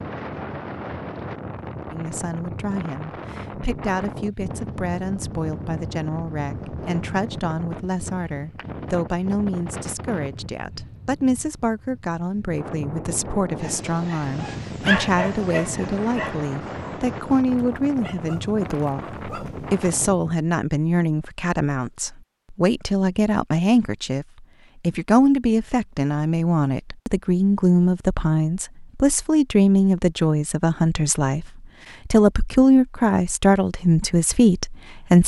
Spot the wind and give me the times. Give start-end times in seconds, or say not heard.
0.0-20.4.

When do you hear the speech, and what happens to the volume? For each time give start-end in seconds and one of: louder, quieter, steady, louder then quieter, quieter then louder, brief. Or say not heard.
1.9-35.2 louder.